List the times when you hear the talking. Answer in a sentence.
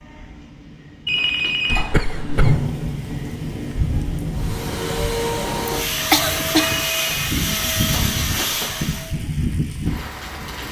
You can't hear the talking here.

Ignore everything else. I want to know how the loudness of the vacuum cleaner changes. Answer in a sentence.
The volume of the vacuum cleaner stays about the same.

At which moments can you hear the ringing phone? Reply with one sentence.
The ringing phone can be heard from 1.1 to 1.9 s and from 6.5 to 7.3 s.